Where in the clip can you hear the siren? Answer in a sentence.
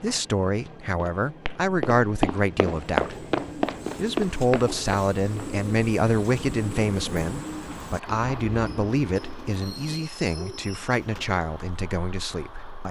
You can't hear the siren here.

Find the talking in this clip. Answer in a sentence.
You can hear the talking from 0.0 to 3.2 s and from 4.0 to 12.8 s.